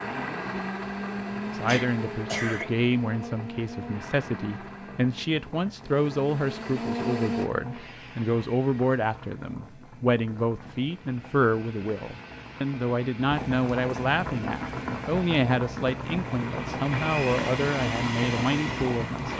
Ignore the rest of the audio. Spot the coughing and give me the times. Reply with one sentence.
The coughing can be heard from 1.6 to 2.6 s.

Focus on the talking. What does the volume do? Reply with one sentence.
The volume of the talking stays about the same.